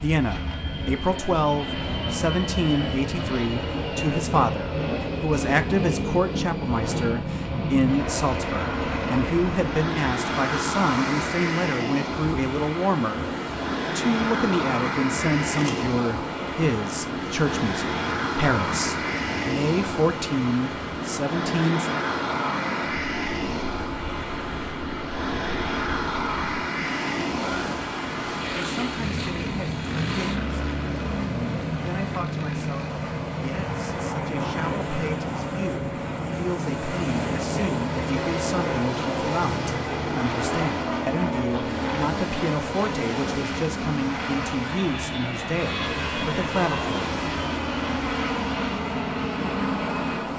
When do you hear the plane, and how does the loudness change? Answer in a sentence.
The plane can be heard from 0.0 to 50.3 s, at a steady volume.